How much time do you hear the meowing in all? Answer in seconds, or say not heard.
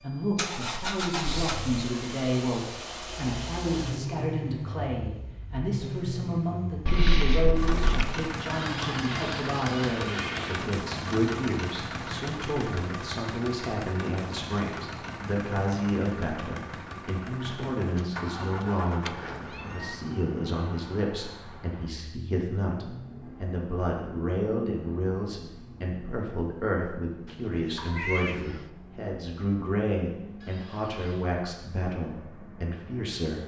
5 s.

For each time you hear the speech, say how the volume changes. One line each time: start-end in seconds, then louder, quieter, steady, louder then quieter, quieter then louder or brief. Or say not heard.
0.0-33.4 steady.